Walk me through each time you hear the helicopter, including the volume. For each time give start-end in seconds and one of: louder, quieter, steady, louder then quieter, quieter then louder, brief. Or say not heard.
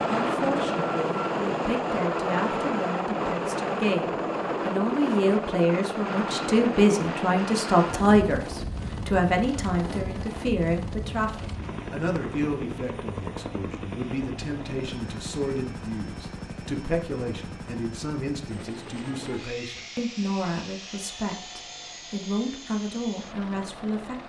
0.0-24.2 quieter.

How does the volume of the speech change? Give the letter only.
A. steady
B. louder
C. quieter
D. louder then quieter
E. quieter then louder
D.